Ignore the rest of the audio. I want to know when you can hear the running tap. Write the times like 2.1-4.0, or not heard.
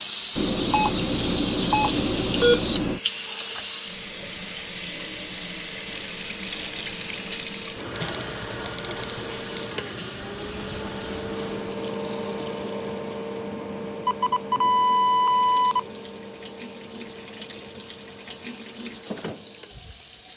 0.0-20.3.